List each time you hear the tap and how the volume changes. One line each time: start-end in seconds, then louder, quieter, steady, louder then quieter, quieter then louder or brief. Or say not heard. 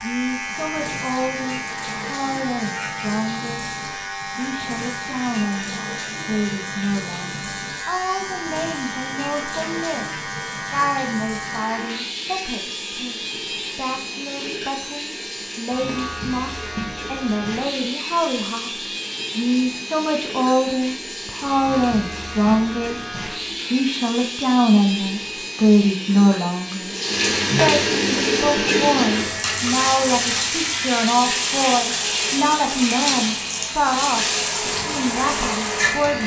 0.2-36.2 louder.